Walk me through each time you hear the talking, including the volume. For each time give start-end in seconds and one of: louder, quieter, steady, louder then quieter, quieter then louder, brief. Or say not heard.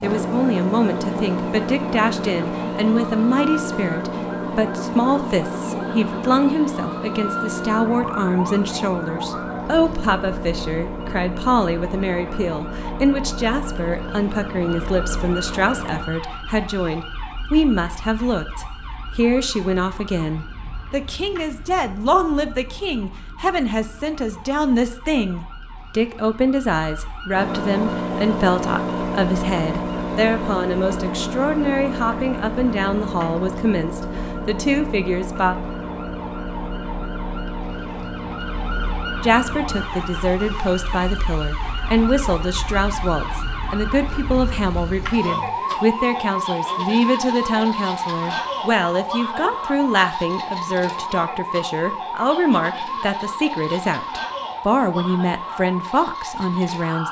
0.0-35.5 steady
39.2-57.0 steady.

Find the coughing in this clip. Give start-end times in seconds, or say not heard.
not heard.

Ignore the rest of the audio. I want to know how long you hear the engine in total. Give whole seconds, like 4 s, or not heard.
34 s.